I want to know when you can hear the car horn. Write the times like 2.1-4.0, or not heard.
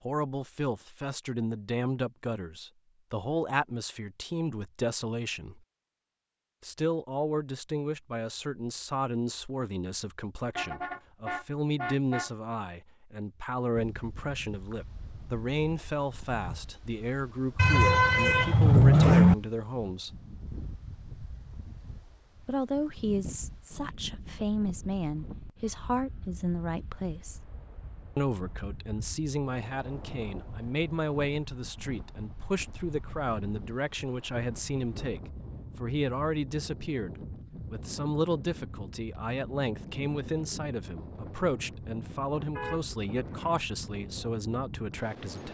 10.4-12.3, 17.6-19.4, 42.5-43.7.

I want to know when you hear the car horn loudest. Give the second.
19 s.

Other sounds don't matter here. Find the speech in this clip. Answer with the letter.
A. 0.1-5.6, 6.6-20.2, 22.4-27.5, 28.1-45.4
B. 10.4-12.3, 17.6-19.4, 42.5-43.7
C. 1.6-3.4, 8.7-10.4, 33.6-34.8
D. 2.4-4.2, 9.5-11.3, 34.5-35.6
A.